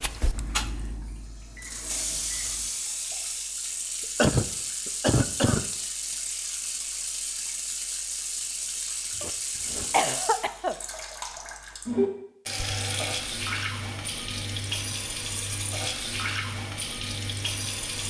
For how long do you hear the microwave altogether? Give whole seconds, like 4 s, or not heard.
3 s.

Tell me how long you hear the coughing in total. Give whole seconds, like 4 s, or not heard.
3 s.